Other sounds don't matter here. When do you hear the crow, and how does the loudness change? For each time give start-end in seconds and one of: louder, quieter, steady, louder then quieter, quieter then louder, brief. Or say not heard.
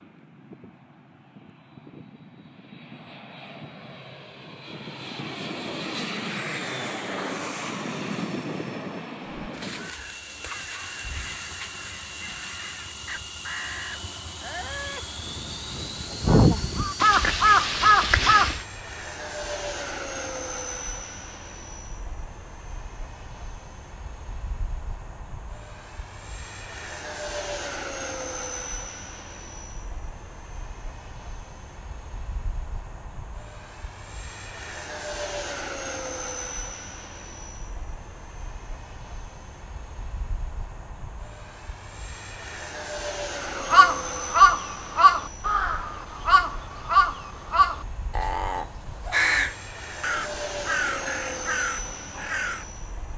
9.4-18.6 louder
43.5-52.6 quieter.